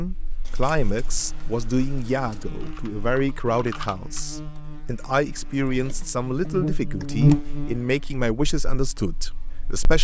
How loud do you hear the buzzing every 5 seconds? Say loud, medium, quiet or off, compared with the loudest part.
quiet, loud.